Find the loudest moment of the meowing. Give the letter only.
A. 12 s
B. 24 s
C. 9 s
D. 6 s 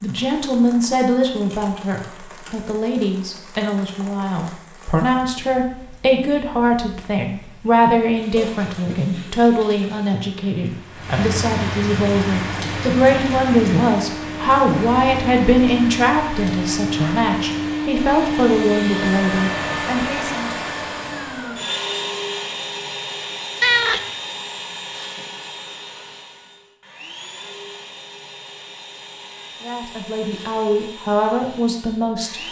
B.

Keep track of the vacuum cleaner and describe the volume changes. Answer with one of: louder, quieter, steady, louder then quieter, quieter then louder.
quieter.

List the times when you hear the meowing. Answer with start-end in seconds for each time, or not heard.
8.3-9.2, 23.6-24.1.